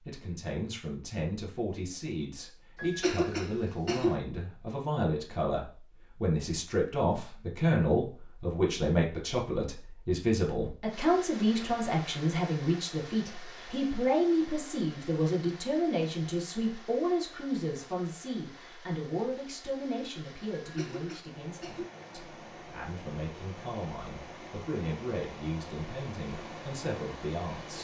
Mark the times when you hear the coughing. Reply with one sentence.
You can hear the coughing from 2.8 to 4.2 s and from 20.6 to 21.9 s.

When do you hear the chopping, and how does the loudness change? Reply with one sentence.
You can't hear the chopping here.